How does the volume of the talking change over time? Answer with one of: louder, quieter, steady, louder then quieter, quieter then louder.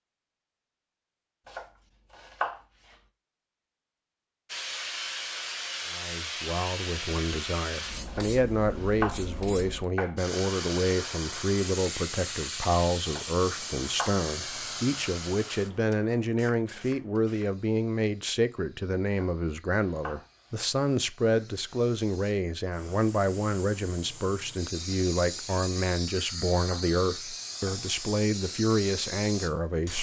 steady.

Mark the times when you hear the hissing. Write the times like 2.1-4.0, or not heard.
4.5-29.9.